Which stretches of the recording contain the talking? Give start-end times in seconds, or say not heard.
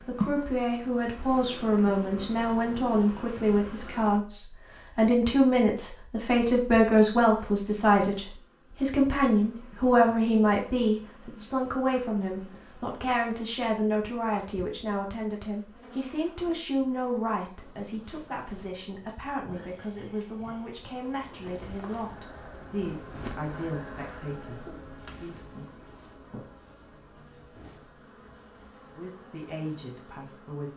0.0-25.4, 28.9-30.7.